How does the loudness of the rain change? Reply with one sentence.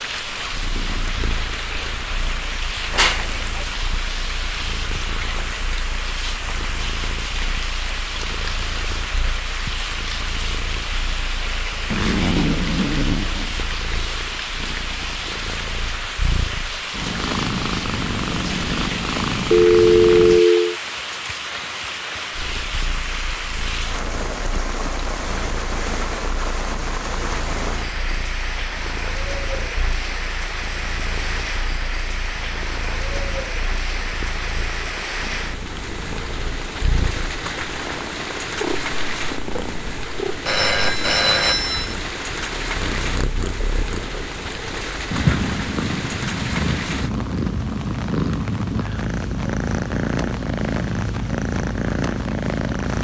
The volume of the rain stays about the same.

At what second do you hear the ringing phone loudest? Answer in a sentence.
The loudest moment of the ringing phone is at 20 seconds.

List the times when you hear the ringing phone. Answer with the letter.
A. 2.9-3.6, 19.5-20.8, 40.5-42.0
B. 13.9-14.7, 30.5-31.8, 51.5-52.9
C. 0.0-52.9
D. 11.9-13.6
A.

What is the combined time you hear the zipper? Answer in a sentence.
You can hear the zipper for 2 seconds altogether.